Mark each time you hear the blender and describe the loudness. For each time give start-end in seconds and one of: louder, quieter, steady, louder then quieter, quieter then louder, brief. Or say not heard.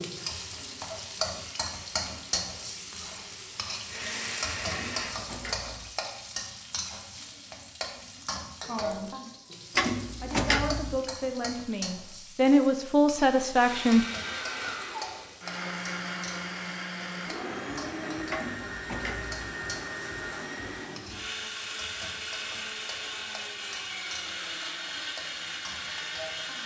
0.0-5.1 louder
13.5-26.6 steady.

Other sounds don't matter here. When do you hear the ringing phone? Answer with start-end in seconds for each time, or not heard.
not heard.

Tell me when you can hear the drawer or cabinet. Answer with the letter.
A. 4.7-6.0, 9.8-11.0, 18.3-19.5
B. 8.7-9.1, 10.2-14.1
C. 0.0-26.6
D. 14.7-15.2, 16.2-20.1
A.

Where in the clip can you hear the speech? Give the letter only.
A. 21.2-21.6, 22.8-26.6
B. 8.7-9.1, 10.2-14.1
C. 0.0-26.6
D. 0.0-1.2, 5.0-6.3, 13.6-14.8
B.